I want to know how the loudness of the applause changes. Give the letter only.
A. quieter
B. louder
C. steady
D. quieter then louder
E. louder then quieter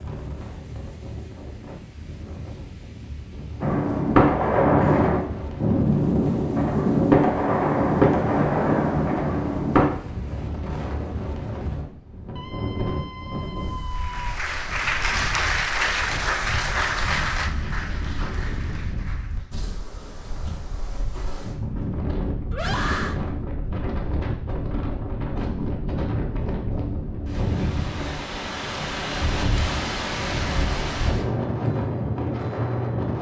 A.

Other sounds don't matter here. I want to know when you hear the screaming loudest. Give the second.
23 s.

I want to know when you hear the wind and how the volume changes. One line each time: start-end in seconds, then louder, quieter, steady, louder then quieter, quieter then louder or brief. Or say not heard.
0.0-33.1 louder.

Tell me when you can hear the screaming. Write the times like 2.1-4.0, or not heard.
12.3-14.3, 22.5-23.2.